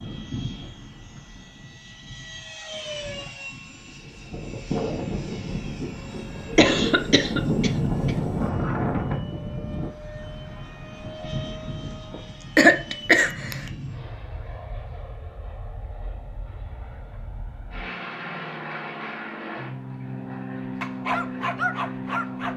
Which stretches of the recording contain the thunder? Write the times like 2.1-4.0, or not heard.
not heard.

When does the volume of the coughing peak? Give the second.
13 s.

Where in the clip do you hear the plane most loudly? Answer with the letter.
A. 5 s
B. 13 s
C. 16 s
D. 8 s
D.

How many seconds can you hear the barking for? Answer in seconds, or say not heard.
2 s.